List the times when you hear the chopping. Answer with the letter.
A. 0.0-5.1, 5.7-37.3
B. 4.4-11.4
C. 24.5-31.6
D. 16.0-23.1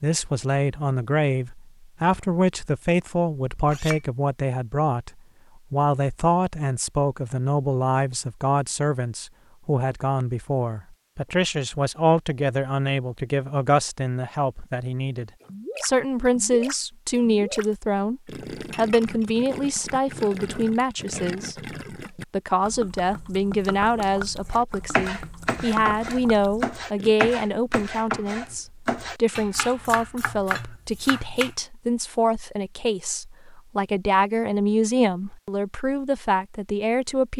C.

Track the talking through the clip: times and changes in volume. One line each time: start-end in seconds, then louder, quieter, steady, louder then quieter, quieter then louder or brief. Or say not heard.
0.0-5.1 steady
5.7-37.3 steady.